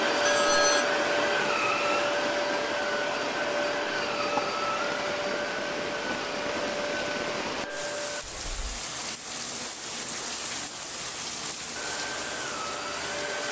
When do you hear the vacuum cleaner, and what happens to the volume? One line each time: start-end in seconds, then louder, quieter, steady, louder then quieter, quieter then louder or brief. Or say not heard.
0.0-8.2 quieter
11.8-13.4 brief.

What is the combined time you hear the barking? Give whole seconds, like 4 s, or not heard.
not heard.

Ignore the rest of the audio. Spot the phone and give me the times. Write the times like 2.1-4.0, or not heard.
0.2-0.8, 8.2-8.7.